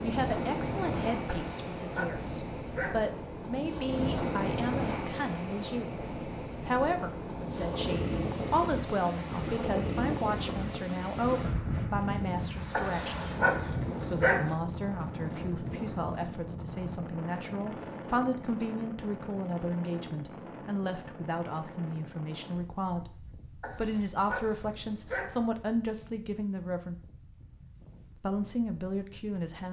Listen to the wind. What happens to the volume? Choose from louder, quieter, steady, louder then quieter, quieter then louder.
quieter.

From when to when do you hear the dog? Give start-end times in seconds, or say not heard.
1.2-3.1, 12.7-14.6, 23.6-25.4.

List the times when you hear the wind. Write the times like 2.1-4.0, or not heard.
0.0-29.6.